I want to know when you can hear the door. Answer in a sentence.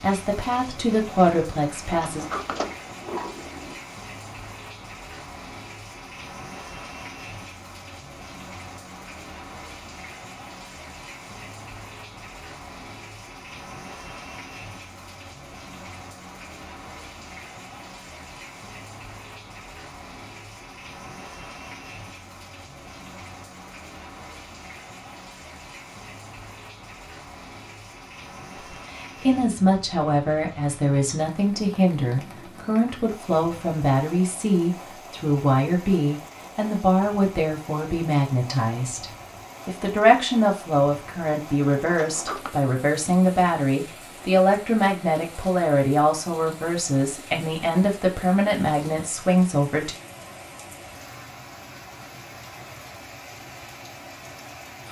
You can hear the door from 1.9 to 3.8 s and from 42.0 to 42.5 s.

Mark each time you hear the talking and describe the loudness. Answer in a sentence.
The talking can be heard briefly from 0.0 to 2.2 s; and from 28.7 to 50.0 s, at a steady volume.